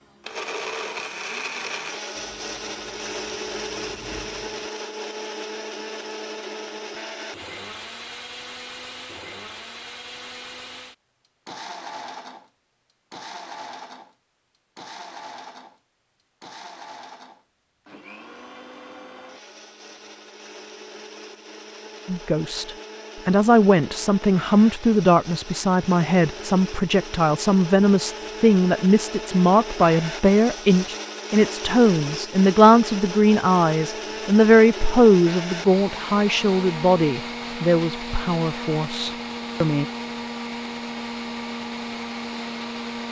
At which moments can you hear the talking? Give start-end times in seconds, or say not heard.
22.1-39.9.